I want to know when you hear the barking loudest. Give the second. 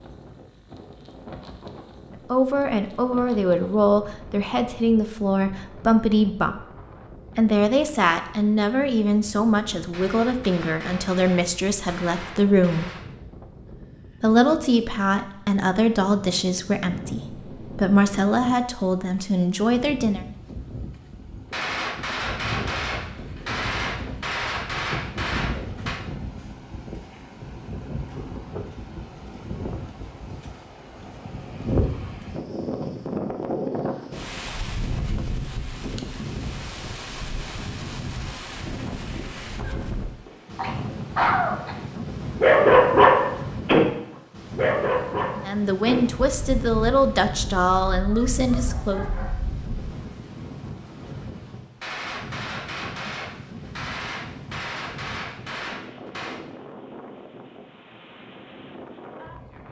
43 s.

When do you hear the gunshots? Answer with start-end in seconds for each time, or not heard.
9.9-13.1, 21.5-26.0, 51.8-56.4.